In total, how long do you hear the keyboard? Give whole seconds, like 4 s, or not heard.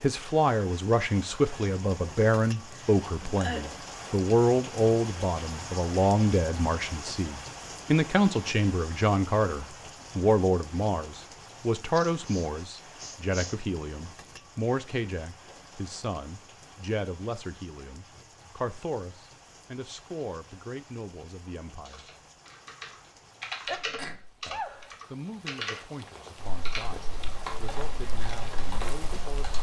8 s.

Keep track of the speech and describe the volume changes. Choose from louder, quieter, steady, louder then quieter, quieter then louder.
quieter.